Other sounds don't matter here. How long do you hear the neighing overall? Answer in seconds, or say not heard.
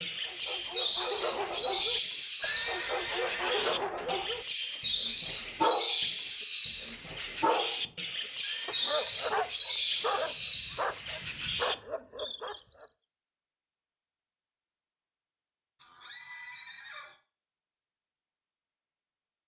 4 s.